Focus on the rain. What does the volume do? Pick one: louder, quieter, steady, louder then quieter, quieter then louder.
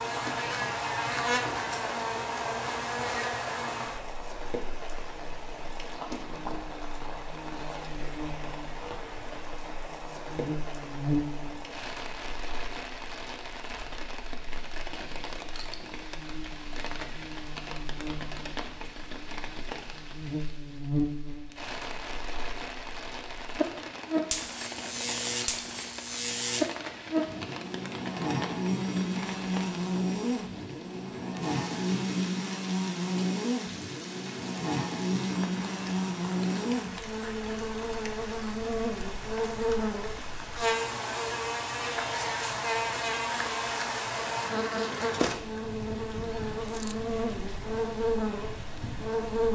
steady.